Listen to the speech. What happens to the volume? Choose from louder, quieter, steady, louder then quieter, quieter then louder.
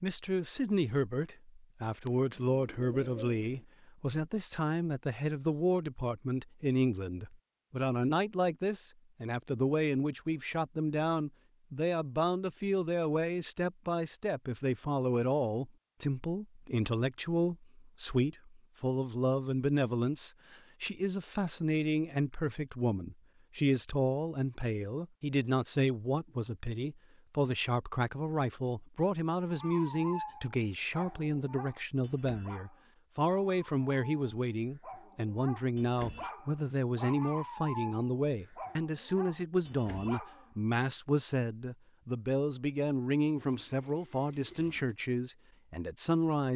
steady.